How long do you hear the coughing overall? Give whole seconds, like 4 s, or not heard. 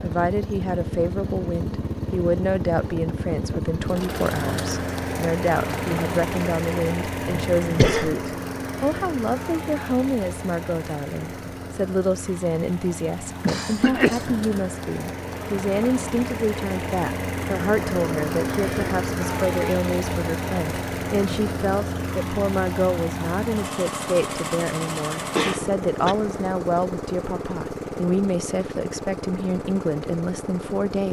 3 s.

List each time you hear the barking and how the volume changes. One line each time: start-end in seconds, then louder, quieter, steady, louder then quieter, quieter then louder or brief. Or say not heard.
not heard.